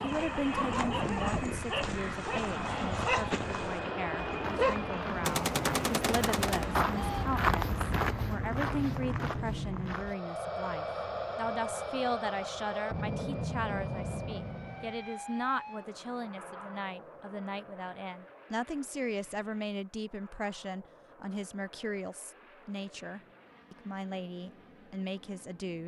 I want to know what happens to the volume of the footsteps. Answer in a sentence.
The volume of the footsteps goes up, then down.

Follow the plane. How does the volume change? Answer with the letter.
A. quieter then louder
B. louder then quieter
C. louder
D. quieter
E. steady
D.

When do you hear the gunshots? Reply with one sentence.
The gunshots can be heard from 5.2 to 7.2 s.